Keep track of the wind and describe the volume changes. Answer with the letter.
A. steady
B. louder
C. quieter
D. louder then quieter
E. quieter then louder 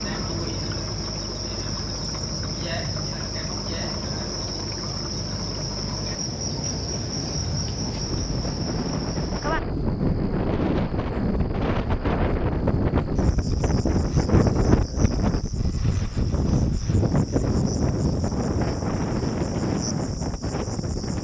B.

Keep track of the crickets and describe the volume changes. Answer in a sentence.
The loudness of the crickets goes down.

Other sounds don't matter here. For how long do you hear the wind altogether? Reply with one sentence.
The wind can be heard for 21 seconds in total.